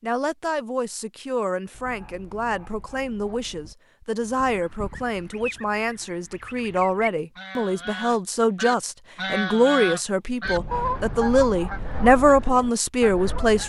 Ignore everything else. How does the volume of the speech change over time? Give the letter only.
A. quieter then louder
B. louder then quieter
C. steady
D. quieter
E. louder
E.